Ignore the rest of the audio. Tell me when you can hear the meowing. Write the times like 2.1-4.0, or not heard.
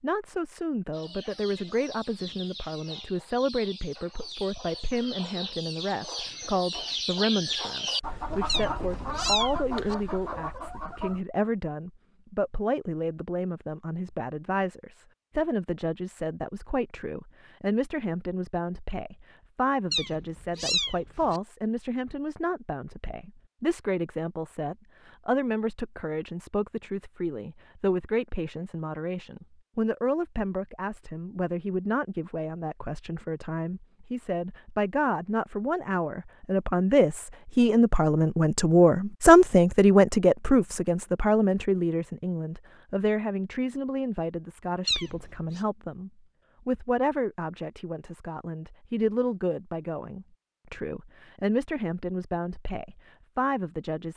8.4-9.9, 19.9-21.4, 44.9-45.6.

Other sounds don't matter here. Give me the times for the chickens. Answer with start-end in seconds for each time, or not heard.
0.9-11.2.